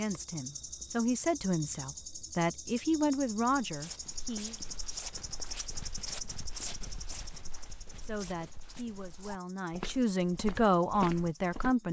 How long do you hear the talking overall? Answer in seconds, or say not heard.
8 s.